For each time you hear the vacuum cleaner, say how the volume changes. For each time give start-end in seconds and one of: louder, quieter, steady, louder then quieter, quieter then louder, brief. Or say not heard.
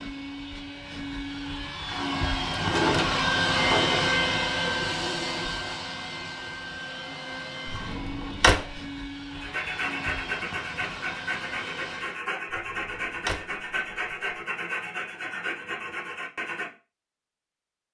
0.0-12.2 louder then quieter.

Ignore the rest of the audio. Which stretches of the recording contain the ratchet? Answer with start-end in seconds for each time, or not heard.
not heard.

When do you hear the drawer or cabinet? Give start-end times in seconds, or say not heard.
2.5-4.2, 7.7-8.6, 12.6-13.4.